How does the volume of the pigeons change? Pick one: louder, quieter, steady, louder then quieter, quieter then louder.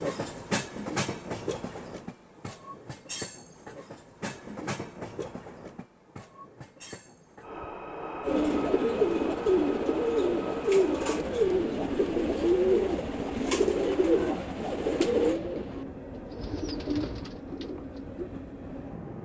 quieter.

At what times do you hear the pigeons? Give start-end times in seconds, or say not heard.
8.2-18.2.